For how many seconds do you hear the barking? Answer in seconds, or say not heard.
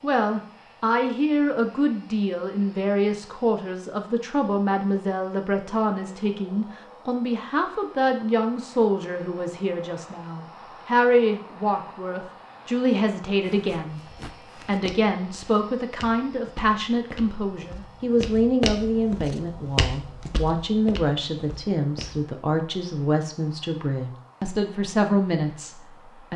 not heard.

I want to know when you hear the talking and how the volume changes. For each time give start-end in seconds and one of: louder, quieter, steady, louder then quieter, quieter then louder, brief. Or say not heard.
0.0-26.3 steady.